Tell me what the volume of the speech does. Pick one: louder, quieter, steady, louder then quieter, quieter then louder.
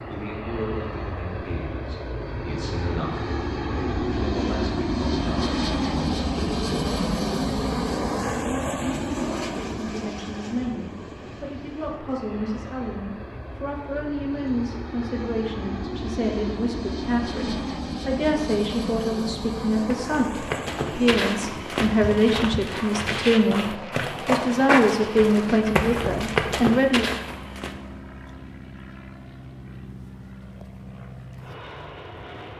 louder.